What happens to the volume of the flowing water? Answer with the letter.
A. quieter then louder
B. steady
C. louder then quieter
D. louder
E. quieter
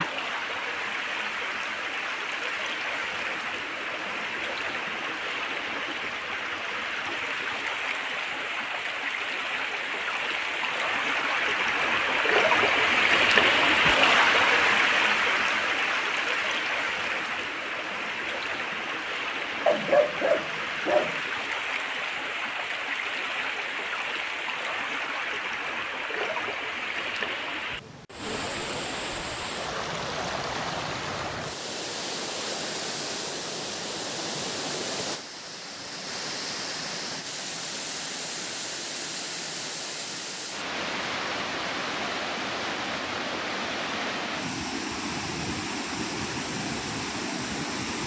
C.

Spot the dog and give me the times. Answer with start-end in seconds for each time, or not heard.
19.6-21.2.